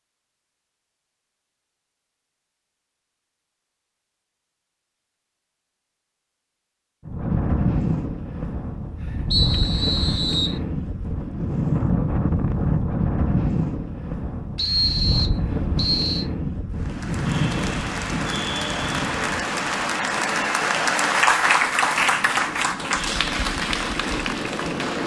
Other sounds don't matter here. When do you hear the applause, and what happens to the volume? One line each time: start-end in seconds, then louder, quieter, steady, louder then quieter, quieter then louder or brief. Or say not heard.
16.7-25.0 louder then quieter.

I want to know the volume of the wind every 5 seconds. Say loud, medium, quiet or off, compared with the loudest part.
off, loud, loud, loud, medium.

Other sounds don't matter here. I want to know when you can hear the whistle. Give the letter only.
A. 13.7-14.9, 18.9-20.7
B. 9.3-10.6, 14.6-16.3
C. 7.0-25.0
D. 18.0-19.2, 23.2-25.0
B.